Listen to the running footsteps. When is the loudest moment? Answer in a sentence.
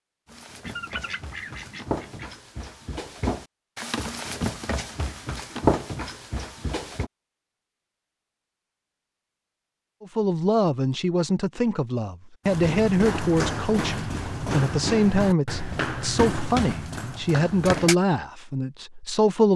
The loudest moment of the running footsteps is at 6 seconds.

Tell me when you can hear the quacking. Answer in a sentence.
The quacking can be heard from 0.6 to 2.4 s.